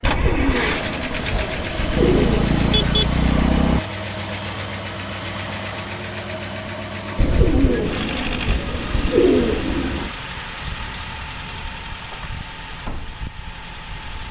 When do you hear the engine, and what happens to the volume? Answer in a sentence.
You can hear the engine from 0.0 to 14.2 s, getting quieter.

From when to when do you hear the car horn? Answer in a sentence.
The car horn can be heard from 1.9 to 3.8 s.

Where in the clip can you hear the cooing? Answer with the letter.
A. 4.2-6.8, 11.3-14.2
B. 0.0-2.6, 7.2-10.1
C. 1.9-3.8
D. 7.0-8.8
B.